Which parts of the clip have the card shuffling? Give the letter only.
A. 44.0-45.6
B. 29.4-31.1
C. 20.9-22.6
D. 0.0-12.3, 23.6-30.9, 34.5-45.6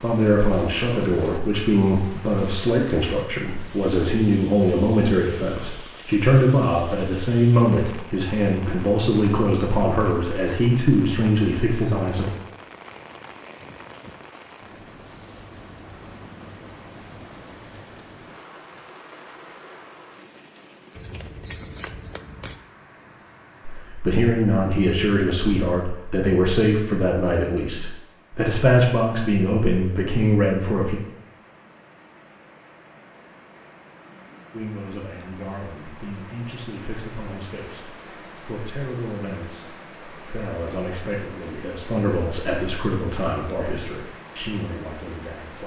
C.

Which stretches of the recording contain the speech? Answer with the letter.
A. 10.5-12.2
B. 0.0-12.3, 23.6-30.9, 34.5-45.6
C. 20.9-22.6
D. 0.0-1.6
B.